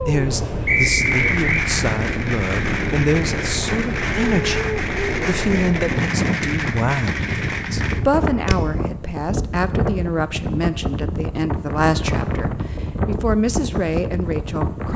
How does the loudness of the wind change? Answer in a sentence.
The volume of the wind stays about the same.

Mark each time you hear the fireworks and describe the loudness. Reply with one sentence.
You can hear the fireworks from 1.0 to 8.6 s, at a steady volume.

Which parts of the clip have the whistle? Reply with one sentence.
You can hear the whistle from 0.7 to 1.6 s.